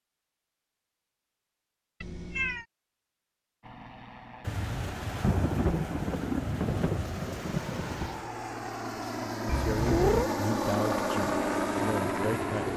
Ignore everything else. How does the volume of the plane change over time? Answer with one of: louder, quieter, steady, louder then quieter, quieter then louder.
louder.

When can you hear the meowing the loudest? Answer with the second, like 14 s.
10 s.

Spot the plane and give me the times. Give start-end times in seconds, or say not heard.
3.6-12.7.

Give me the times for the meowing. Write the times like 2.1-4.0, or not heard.
2.0-2.6, 9.4-10.3.